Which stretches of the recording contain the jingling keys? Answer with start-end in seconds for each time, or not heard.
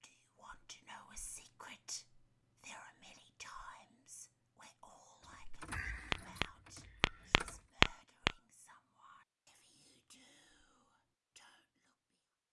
5.2-7.7.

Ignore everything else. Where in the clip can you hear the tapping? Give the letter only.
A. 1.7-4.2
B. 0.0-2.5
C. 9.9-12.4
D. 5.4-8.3
D.